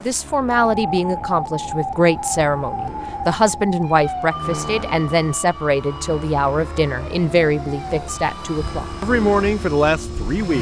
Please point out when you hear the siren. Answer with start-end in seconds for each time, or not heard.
0.0-10.2.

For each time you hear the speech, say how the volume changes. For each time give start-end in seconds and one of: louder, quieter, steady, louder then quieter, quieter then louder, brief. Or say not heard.
0.1-10.5 steady.